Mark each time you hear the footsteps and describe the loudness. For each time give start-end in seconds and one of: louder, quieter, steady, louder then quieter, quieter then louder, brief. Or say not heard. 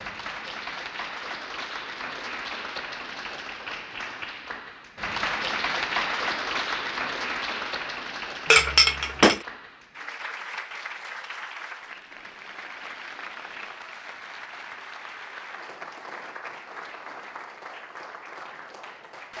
not heard.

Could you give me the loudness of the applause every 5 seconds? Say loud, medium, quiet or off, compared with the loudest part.
medium, loud, medium, medium.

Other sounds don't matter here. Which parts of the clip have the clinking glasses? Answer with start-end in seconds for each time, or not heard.
8.4-9.4.